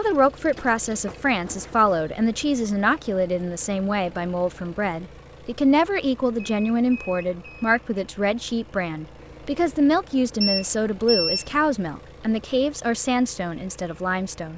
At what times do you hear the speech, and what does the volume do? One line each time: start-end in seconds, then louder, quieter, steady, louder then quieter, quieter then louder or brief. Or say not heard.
0.0-14.5 steady.